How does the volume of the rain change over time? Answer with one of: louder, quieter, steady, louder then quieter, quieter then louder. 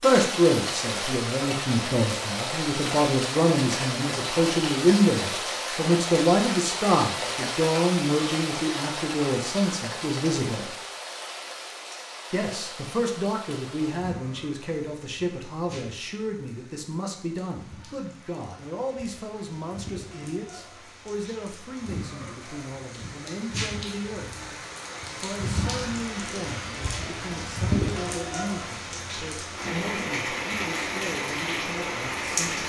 quieter then louder.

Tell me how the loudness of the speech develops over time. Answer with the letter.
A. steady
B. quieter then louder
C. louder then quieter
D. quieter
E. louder
D.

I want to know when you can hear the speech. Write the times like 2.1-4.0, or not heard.
0.0-10.8, 12.3-24.6, 25.2-32.6.